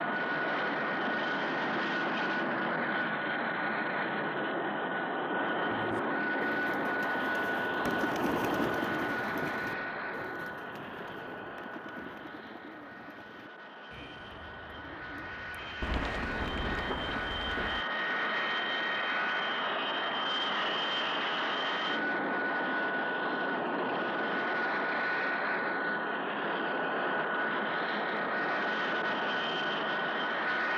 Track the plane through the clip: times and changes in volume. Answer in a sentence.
The plane can be heard from 0.0 to 30.7 s, getting quieter then louder.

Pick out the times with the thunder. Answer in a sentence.
The thunder can be heard from 7.8 to 11.6 s and from 15.8 to 17.9 s.